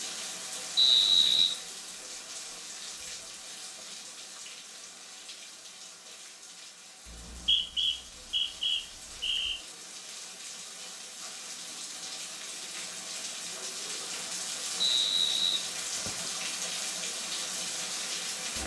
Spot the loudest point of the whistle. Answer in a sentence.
The volume of the whistle peaks at 1 second.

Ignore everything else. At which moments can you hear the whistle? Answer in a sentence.
The whistle can be heard from 0.8 to 1.6 s, from 7.0 to 9.6 s and from 14.8 to 16.3 s.